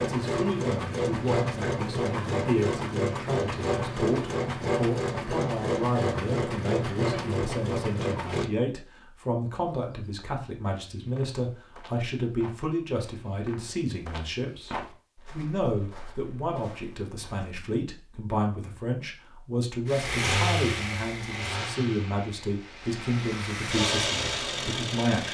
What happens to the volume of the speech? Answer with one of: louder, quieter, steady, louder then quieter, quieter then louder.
steady.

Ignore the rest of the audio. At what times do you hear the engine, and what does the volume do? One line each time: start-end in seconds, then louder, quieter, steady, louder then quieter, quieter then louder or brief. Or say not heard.
0.0-8.5 steady
19.9-25.2 quieter then louder.